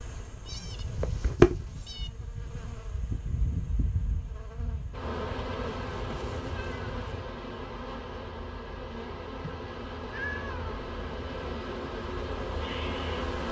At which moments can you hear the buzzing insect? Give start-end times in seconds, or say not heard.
0.0-13.4.